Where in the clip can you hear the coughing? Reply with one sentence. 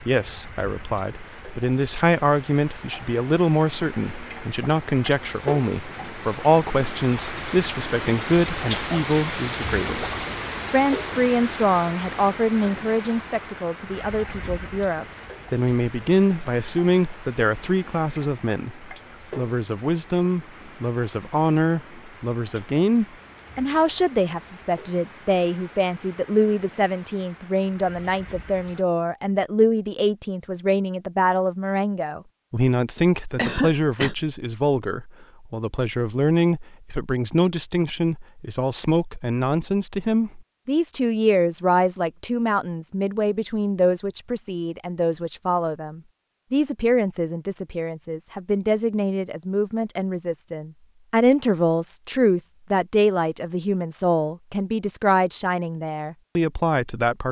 The coughing can be heard from 33.0 to 34.1 s.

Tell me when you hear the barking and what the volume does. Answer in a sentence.
The barking can't be heard in this clip.